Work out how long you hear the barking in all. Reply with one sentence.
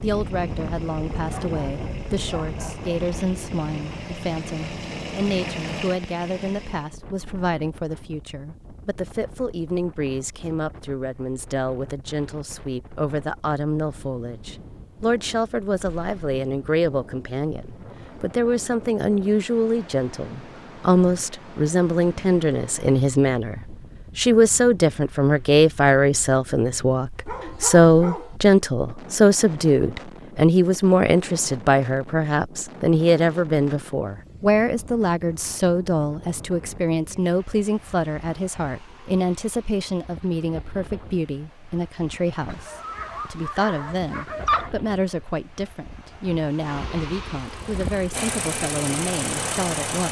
You can hear the barking for 5 seconds altogether.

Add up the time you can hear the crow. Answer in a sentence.
You can't hear the crow here.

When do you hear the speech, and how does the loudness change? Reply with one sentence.
You can hear the speech from 0.0 to 50.0 s, getting louder then quieter.